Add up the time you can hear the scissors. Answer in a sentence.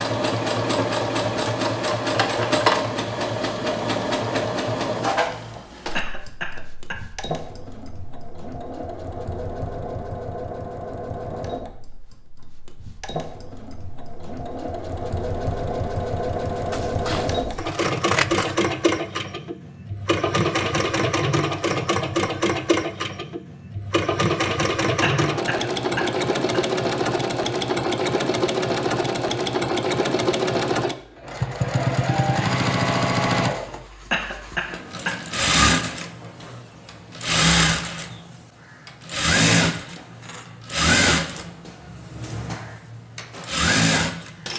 You can hear the scissors for 2 seconds altogether.